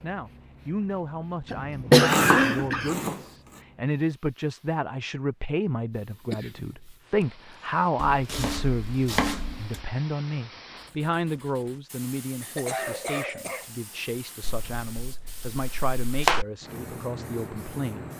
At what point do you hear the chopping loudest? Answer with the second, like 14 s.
2 s.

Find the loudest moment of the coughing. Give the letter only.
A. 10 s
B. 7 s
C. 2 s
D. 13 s
C.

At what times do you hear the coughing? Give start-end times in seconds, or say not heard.
1.4-3.0, 6.3-7.2, 12.4-13.7.